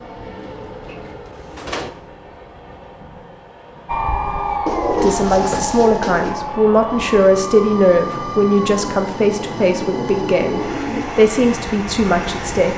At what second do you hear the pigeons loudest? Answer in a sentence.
The volume of the pigeons peaks at 5 seconds.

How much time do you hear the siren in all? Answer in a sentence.
The siren can be heard for 9 seconds in total.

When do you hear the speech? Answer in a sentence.
You can hear the speech from 5.0 to 12.7 s.